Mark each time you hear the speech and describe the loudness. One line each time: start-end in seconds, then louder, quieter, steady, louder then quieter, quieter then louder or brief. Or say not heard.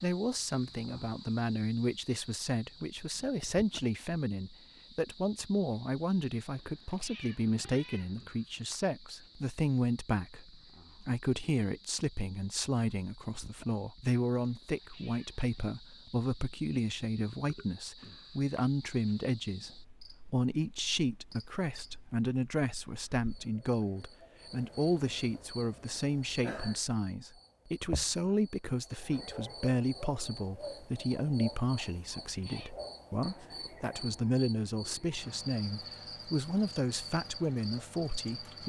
0.0-38.6 steady.